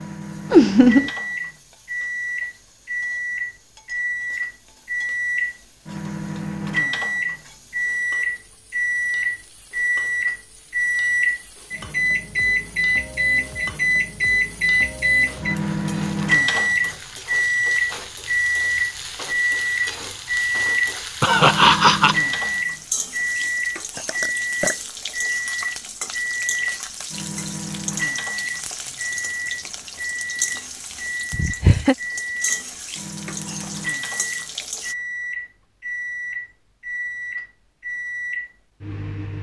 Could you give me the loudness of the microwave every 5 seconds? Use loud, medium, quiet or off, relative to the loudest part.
medium, loud, loud, loud, loud, medium, medium, medium.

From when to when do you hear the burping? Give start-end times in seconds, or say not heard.
23.9-24.8.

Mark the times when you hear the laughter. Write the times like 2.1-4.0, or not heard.
0.5-1.1, 21.2-22.1, 31.3-31.9.